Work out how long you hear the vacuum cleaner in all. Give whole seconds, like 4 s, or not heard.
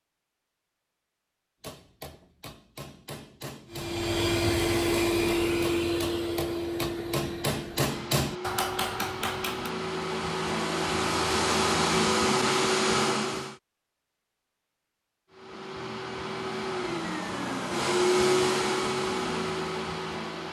15 s.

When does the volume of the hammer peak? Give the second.
8 s.